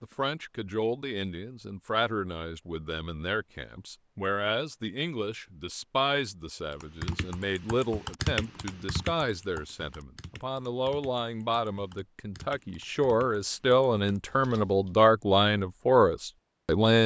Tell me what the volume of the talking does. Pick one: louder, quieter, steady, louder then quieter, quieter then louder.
louder.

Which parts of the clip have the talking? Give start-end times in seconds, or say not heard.
0.0-17.0.